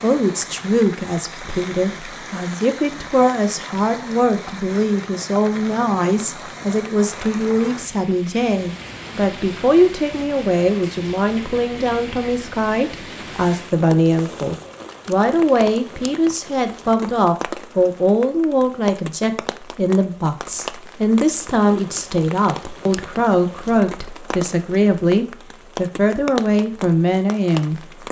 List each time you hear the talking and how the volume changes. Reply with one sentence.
You can hear the talking from 0.0 to 27.8 s, at a steady volume.